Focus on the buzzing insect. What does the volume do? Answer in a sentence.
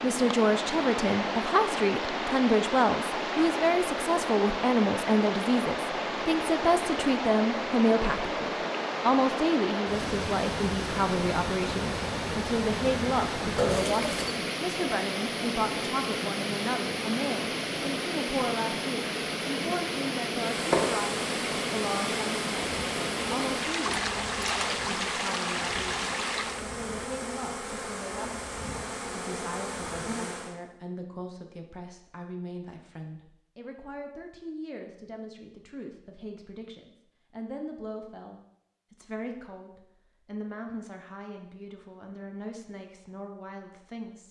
The volume of the buzzing insect stays about the same.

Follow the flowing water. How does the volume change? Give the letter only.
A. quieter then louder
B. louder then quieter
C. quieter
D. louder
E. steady
E.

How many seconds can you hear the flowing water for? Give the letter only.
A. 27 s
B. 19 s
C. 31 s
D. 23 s
A.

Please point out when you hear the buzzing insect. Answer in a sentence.
The buzzing insect can be heard from 20.4 to 30.6 s.